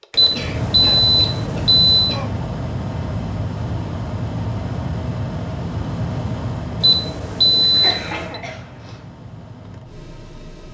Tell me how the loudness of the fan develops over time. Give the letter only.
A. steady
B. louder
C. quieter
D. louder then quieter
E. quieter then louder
C.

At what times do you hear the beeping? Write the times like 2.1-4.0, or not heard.
0.1-2.2, 6.8-8.4.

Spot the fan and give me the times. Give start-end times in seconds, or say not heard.
0.0-10.6.